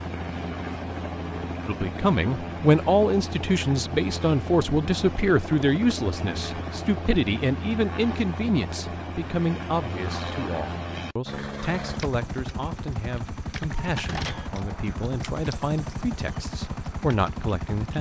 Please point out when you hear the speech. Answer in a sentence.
The speech can be heard from 1.6 to 17.9 s.